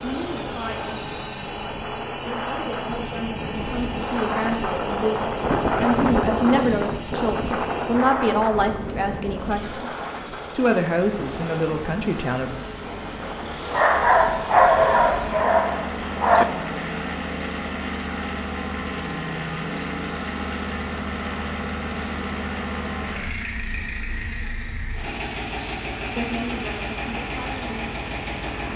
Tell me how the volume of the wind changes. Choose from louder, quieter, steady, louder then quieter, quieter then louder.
louder then quieter.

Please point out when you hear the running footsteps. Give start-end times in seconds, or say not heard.
not heard.